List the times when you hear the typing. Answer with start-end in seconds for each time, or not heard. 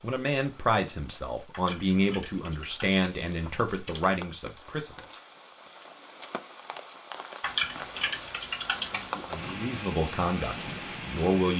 1.5-4.2, 7.4-9.5.